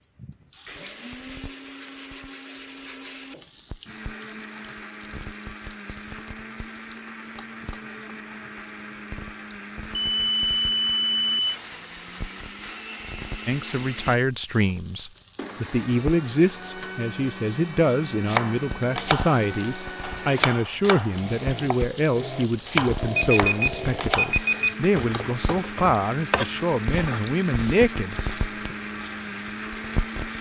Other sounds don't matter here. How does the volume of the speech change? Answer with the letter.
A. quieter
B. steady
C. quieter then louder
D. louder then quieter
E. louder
B.